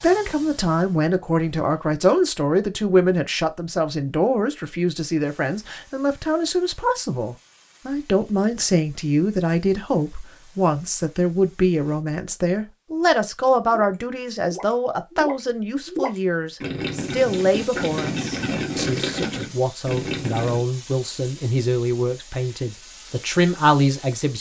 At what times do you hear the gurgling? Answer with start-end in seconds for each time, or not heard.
13.7-20.6.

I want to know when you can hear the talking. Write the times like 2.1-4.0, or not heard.
0.0-24.3.